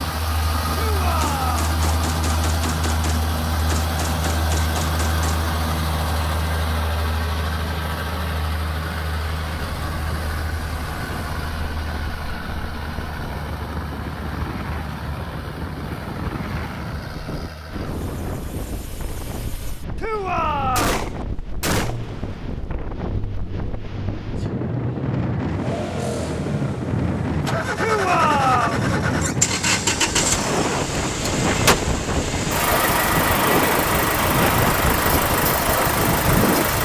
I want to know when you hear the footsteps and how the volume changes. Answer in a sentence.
You can't hear the footsteps here.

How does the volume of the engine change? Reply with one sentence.
The loudness of the engine goes down, then up.